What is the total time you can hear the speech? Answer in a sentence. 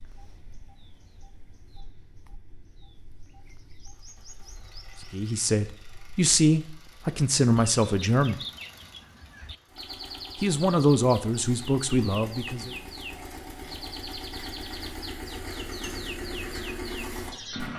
The speech can be heard for 6 seconds in total.